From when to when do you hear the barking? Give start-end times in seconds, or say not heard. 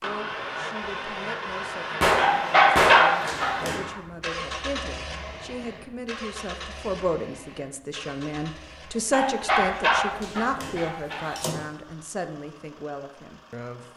2.1-3.8, 9.1-11.6.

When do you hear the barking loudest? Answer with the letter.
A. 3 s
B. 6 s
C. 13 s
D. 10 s
A.